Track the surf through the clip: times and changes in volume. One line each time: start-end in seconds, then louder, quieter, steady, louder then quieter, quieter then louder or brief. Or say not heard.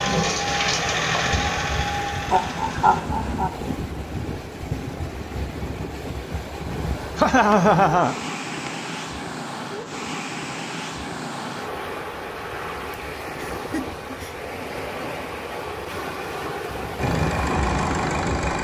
0.0-18.5 steady.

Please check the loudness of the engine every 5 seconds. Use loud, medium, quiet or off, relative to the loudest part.
loud, off, off, loud.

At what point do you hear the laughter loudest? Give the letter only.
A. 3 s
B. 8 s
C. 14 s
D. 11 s
B.